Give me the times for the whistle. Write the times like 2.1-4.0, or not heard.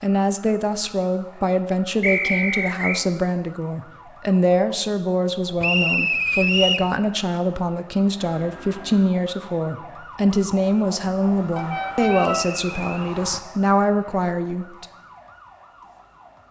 2.0-3.0, 5.6-6.9, 12.1-13.2.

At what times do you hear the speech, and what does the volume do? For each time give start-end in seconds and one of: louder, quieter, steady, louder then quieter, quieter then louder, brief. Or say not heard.
0.0-14.8 steady.